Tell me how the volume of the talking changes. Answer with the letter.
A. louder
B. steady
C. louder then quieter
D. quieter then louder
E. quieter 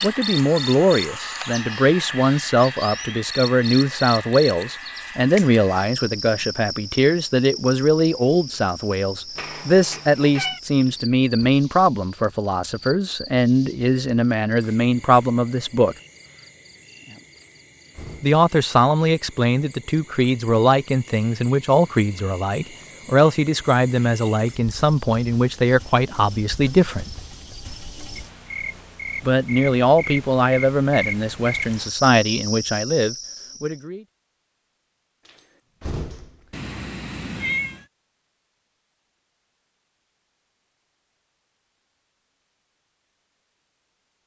B.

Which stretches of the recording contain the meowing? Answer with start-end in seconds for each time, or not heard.
9.3-10.6, 36.5-37.9.